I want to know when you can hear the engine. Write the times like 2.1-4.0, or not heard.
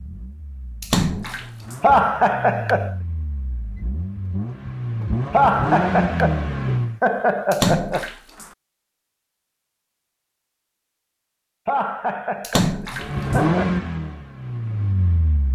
0.0-7.0, 12.9-15.5.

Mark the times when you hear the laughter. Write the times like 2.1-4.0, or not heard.
1.8-3.0, 5.3-8.1, 11.7-13.8.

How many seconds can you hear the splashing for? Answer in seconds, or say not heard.
3 s.